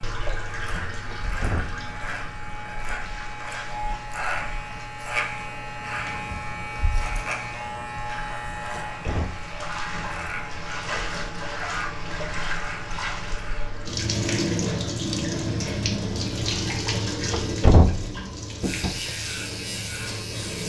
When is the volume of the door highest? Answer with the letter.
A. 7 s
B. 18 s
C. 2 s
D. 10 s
B.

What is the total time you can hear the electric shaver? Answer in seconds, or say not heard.
16 s.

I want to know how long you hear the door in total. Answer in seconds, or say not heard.
3 s.